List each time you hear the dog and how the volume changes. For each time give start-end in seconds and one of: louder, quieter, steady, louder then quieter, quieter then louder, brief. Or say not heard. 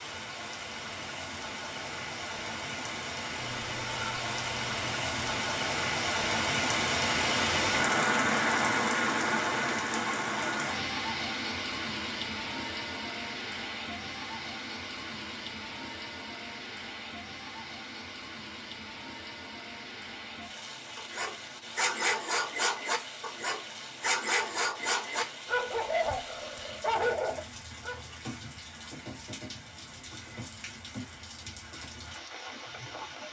20.9-28.0 steady.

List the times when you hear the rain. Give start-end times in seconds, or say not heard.
0.0-33.2.